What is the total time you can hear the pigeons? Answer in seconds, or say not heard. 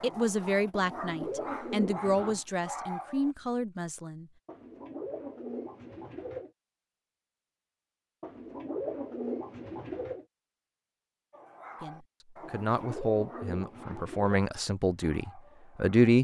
8 s.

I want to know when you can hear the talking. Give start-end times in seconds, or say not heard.
0.0-4.3, 11.8-16.1.